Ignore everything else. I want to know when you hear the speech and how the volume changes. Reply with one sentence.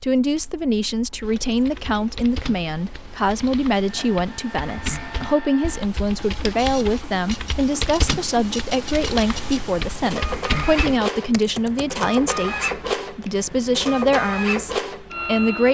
The speech can be heard from 0.0 to 15.7 s, at a steady volume.